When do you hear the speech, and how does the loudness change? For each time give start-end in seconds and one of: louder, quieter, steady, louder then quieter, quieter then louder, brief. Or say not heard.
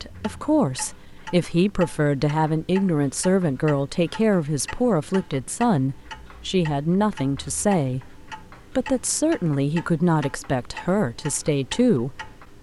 0.0-12.3 steady.